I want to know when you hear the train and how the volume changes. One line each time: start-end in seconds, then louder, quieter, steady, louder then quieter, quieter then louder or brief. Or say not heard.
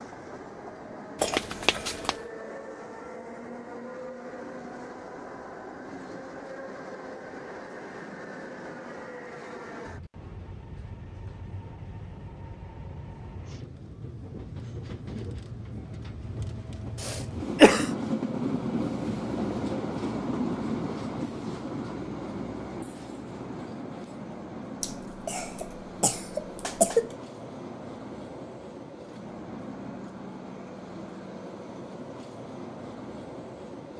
0.0-33.9 louder then quieter.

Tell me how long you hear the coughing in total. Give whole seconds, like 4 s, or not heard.
4 s.